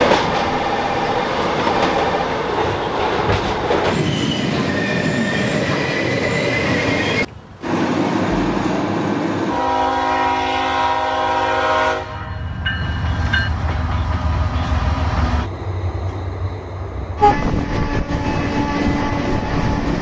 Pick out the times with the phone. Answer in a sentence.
The phone can be heard from 0.2 to 2.2 s.